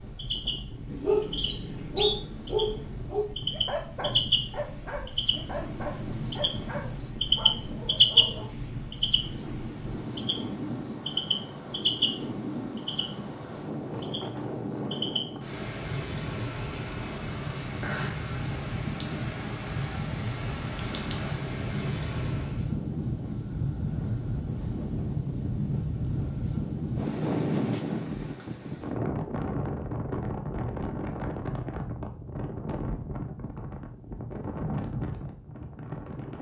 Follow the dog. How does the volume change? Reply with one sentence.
The volume of the dog goes down.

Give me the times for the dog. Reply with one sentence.
You can hear the dog from 0.9 to 8.4 s.